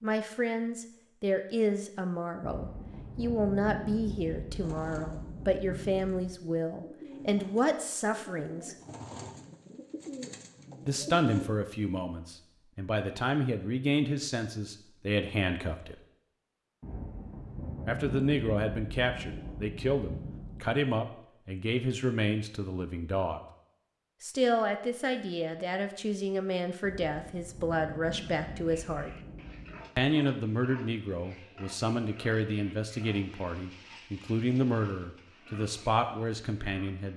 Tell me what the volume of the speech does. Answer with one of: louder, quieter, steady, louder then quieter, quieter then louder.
steady.